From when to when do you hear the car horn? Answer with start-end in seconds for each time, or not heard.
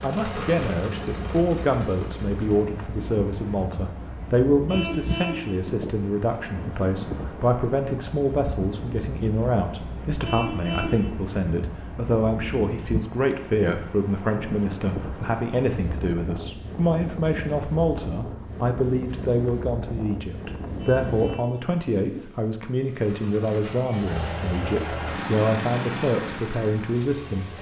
4.7-5.5, 10.2-11.1, 20.8-21.6.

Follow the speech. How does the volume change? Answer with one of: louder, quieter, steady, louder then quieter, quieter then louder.
steady.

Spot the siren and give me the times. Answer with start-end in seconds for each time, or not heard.
not heard.